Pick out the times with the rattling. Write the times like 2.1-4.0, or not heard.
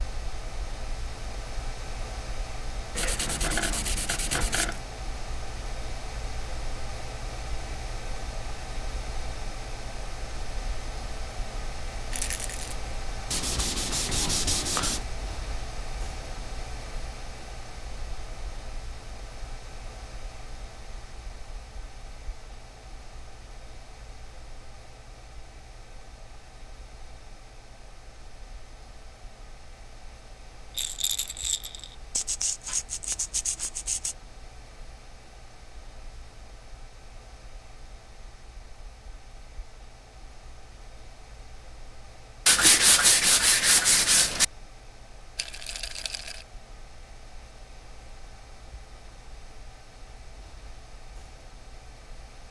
12.1-12.8, 30.7-31.9, 45.4-46.5.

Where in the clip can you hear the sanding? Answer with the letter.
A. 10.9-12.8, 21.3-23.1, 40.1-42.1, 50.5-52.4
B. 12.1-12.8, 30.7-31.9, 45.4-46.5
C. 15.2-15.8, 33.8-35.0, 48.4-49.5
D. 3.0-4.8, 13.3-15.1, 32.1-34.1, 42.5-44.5
D.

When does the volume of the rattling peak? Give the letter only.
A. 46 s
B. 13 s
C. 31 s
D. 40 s
C.